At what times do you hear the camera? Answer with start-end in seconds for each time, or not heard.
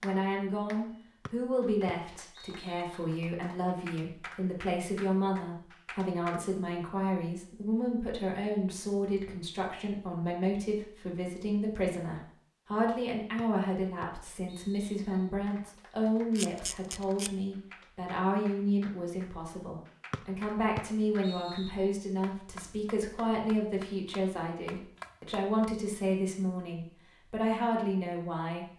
16.4-17.3.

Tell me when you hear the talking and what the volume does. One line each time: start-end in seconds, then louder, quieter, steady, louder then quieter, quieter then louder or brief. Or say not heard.
0.0-28.7 steady.